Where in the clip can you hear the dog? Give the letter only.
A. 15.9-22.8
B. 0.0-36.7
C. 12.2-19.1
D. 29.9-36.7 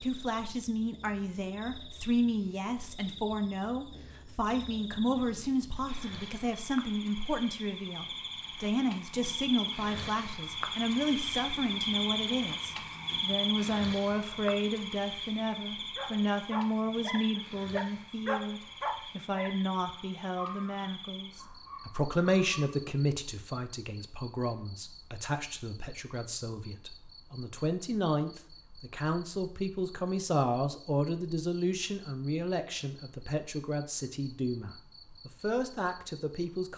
A.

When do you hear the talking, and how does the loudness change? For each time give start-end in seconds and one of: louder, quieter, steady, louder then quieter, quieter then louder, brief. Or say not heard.
0.0-36.7 steady.